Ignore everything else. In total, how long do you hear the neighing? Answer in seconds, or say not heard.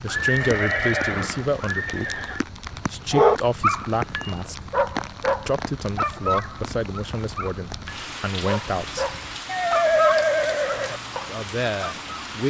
4 s.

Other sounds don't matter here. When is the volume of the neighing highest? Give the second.
10 s.